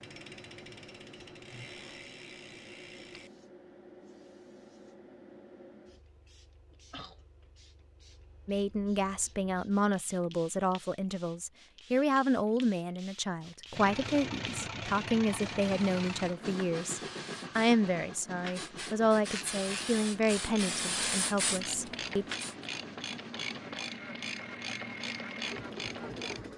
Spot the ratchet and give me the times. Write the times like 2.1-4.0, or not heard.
0.0-3.3, 19.3-26.4.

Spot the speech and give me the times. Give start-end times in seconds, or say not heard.
8.4-22.2.